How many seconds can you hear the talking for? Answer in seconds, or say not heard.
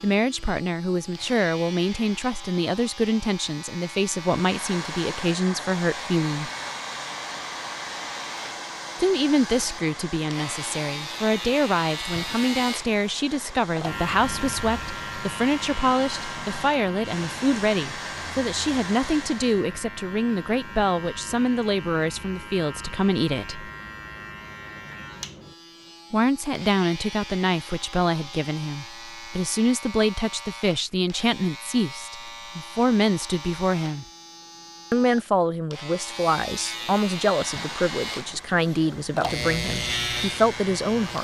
35 s.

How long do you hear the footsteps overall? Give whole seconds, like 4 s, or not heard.
not heard.